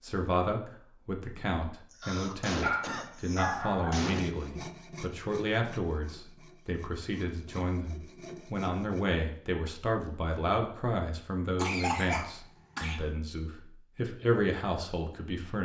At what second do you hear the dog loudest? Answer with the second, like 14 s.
3 s.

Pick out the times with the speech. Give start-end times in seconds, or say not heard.
0.0-15.5.